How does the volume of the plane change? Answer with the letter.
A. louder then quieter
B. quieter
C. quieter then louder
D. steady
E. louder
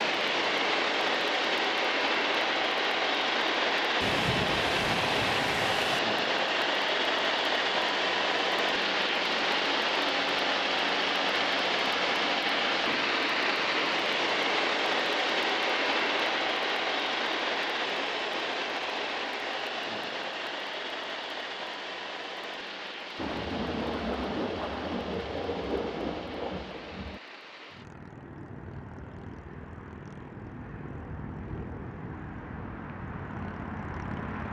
B.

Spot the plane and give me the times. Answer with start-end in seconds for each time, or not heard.
0.0-34.4.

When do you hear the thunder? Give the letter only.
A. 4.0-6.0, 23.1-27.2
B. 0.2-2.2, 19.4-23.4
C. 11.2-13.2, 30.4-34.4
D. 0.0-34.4
A.